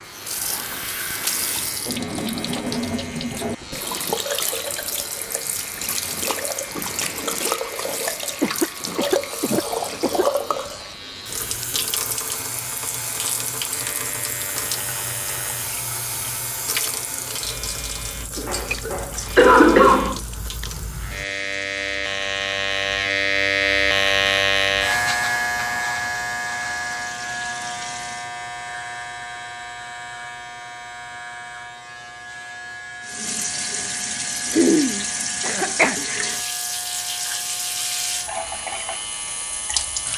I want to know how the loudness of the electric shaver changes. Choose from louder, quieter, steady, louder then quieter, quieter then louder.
louder then quieter.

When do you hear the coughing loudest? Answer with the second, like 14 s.
20 s.